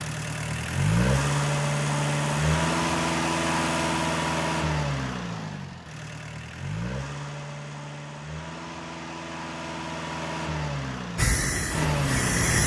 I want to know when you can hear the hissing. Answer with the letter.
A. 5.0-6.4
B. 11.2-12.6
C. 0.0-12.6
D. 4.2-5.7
B.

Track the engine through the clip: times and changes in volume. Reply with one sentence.
You can hear the engine from 0.0 to 12.6 s, getting quieter then louder.